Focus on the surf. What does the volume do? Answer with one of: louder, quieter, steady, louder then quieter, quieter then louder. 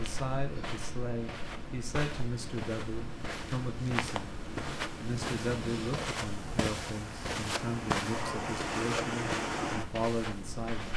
louder.